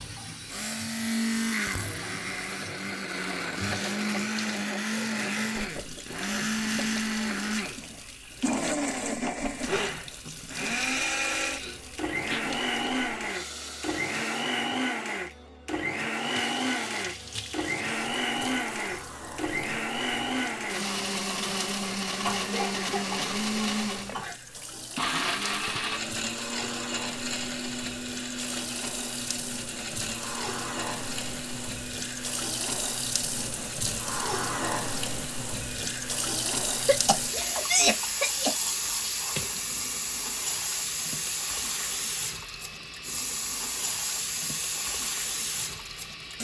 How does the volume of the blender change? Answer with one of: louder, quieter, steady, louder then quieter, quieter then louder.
quieter.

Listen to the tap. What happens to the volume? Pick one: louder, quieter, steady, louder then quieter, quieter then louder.
louder.